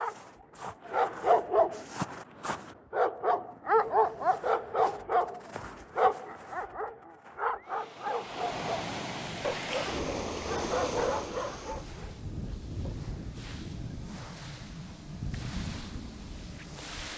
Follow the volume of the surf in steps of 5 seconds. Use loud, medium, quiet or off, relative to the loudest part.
off, loud, loud, loud.